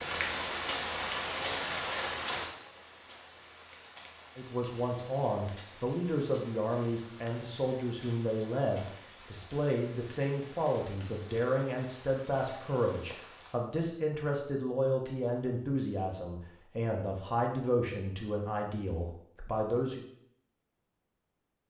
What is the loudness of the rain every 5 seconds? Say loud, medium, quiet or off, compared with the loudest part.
loud, quiet, quiet, off, off.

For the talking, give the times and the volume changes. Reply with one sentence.
The talking can be heard from 4.3 to 20.0 s, at a steady volume.